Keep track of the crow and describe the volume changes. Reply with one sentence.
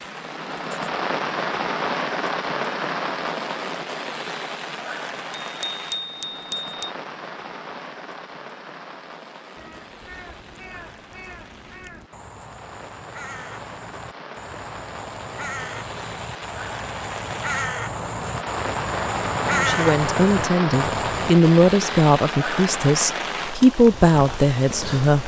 The loudness of the crow goes up.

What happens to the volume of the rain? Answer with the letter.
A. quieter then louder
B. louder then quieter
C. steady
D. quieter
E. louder
A.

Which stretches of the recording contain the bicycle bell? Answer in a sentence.
You can hear the bicycle bell from 5.4 to 7.0 s.